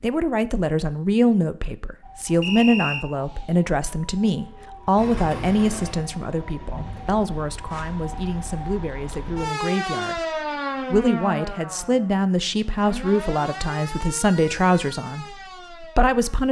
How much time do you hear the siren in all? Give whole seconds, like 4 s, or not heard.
14 s.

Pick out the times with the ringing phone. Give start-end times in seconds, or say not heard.
not heard.